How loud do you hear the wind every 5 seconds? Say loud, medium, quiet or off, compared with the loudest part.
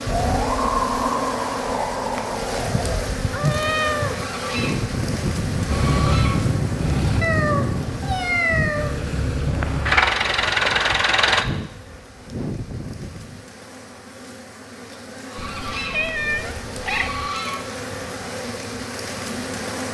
loud, loud, medium, off.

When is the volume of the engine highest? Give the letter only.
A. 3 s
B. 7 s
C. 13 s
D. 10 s
D.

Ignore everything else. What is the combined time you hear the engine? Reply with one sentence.
You can hear the engine for 4 seconds altogether.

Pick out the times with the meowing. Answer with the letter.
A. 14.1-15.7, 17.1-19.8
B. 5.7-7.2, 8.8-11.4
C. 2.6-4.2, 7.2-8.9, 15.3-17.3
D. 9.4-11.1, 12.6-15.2
C.